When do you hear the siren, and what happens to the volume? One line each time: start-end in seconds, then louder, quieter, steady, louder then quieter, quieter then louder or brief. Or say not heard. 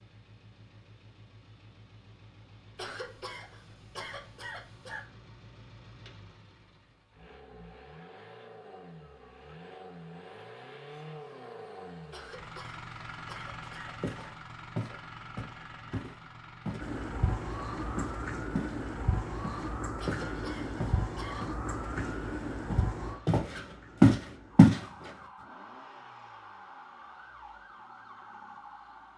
16.8-29.1 quieter.